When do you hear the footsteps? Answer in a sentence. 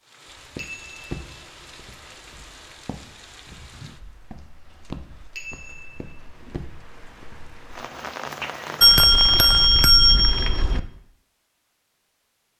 You can hear the footsteps from 0.3 to 7.5 s.